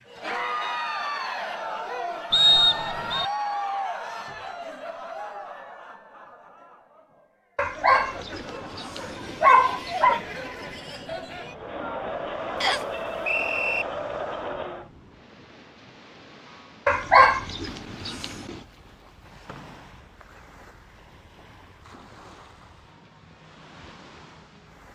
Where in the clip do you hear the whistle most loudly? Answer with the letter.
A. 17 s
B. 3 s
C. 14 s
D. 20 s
B.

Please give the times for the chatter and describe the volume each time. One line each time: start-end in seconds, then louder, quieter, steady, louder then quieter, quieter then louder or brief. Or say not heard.
0.0-14.9 quieter then louder.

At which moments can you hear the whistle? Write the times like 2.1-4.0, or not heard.
2.3-3.2, 12.6-13.8, 19.4-20.2.